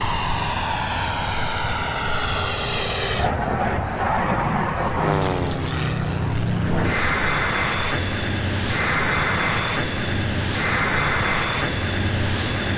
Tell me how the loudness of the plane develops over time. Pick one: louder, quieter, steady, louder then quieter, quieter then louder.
steady.